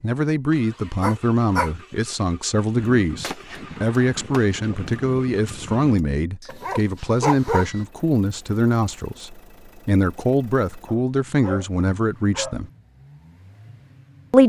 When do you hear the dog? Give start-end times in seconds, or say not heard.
1.0-1.7, 6.5-7.7, 10.8-12.6.